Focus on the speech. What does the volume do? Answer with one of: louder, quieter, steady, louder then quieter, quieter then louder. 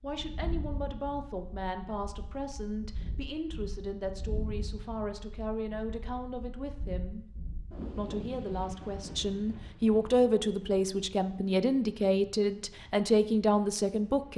louder.